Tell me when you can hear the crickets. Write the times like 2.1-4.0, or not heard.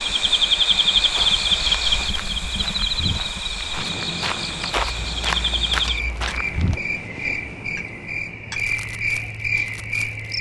0.0-10.3.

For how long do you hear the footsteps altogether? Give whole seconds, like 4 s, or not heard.
6 s.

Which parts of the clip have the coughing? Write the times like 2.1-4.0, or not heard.
not heard.